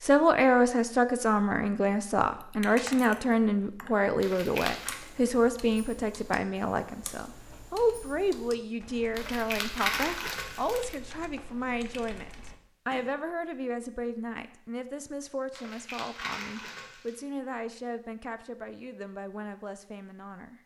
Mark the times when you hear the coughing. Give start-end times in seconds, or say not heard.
not heard.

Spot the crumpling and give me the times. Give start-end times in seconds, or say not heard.
4.2-5.0, 9.2-10.9, 15.5-17.2.